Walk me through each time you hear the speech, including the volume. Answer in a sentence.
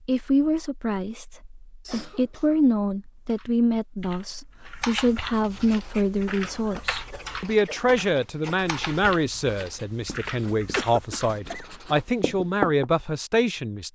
The speech can be heard from 0.1 to 13.9 s, at a steady volume.